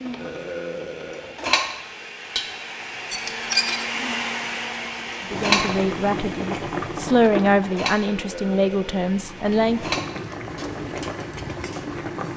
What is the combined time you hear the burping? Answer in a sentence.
You can hear the burping for 2 seconds altogether.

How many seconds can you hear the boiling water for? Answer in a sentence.
You can hear the boiling water for 7 seconds altogether.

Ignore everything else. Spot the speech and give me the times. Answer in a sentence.
The speech can be heard from 5.3 to 10.0 s.